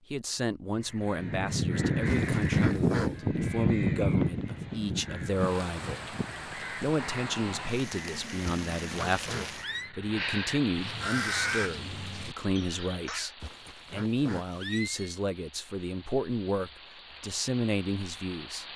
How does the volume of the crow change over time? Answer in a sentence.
The loudness of the crow goes down, then up.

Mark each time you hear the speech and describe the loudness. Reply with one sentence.
The speech can be heard from 0.1 to 18.6 s, at a steady volume.